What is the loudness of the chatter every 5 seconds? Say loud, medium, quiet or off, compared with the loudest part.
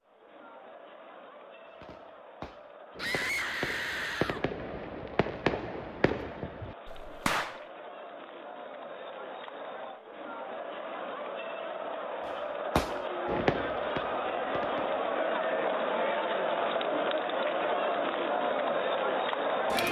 quiet, quiet, medium, loud.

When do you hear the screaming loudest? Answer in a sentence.
The loudest moment of the screaming is at 3 seconds.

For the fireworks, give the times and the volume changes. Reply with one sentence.
The fireworks can be heard from 1.8 to 7.6 s, getting louder then quieter; and briefly from 12.8 to 15.0 s.